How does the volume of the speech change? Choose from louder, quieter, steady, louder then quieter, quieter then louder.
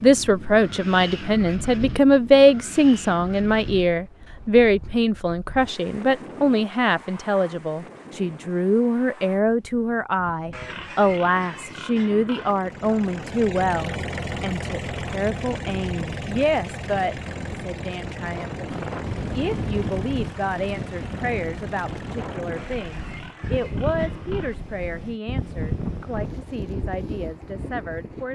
quieter.